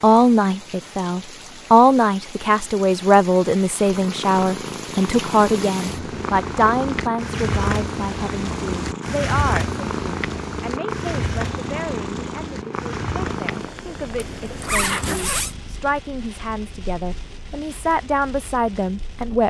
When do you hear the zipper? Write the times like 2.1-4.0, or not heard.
14.2-15.6.